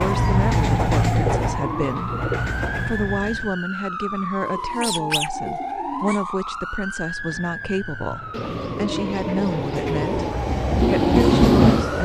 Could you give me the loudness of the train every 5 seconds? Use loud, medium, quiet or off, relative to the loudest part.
medium, quiet, loud.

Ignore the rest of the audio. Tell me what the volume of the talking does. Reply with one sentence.
The volume of the talking stays about the same.